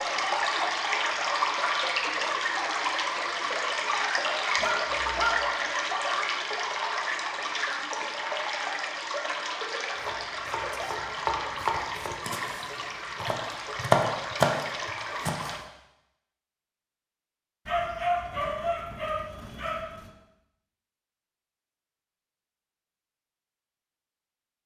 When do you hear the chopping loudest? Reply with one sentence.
The loudest moment of the chopping is at 14 seconds.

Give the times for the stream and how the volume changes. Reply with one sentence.
The stream can be heard from 0.0 to 15.6 s, getting quieter.